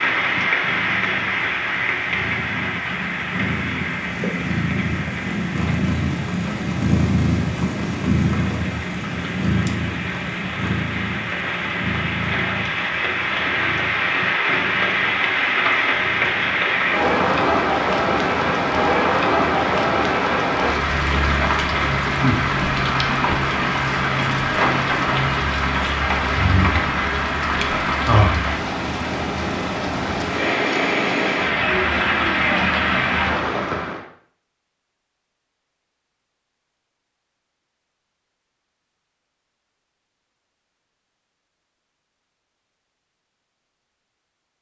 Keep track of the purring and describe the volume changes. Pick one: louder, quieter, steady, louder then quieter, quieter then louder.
louder then quieter.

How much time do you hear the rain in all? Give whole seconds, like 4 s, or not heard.
34 s.